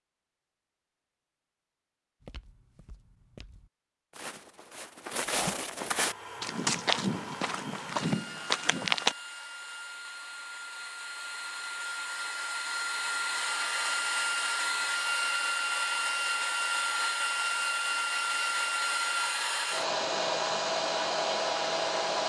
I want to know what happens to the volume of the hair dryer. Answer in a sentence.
The volume of the hair dryer goes up.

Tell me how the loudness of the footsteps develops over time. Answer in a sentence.
The loudness of the footsteps goes up.